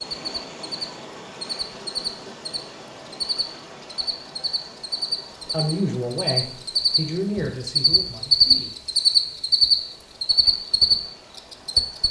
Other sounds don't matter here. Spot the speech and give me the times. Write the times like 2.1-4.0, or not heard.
5.5-8.8.